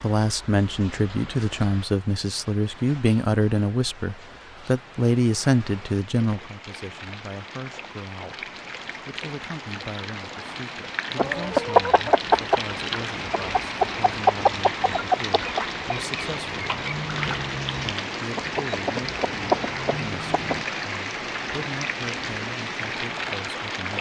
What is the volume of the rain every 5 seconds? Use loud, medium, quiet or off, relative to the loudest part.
quiet, medium, loud, loud, loud.